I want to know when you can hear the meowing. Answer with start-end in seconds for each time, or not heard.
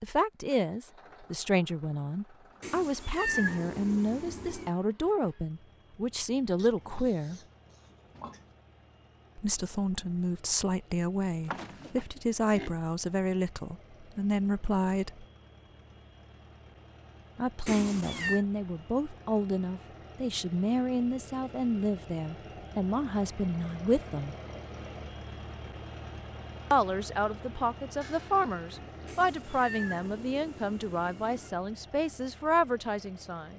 2.6-4.7, 17.6-18.4, 29.1-31.5.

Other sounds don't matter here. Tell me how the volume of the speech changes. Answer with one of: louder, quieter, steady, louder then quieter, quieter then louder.
steady.